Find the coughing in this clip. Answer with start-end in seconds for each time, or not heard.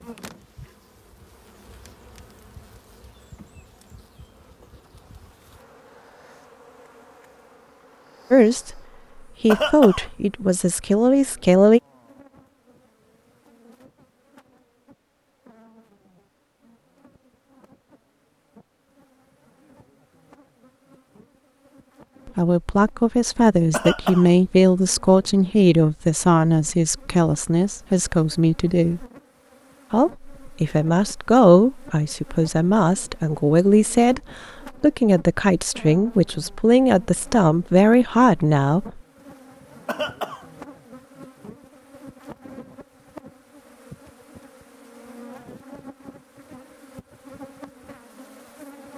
9.4-10.1, 23.7-24.3, 39.9-40.5.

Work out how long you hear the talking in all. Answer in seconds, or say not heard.
18 s.